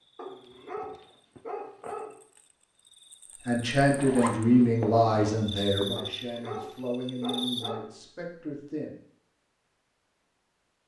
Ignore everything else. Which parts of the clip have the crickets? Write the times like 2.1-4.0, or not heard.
0.1-7.8.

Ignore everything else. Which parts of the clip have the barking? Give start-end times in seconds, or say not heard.
0.1-2.2, 6.0-8.0.